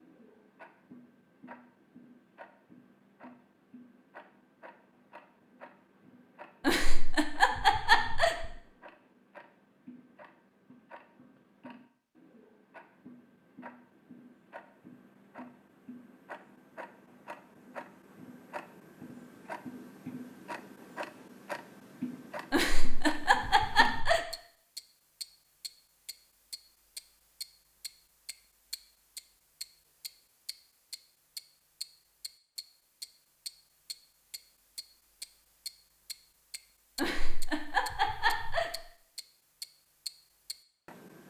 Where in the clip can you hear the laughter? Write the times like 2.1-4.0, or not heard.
6.7-8.4, 22.5-24.2, 37.0-38.8.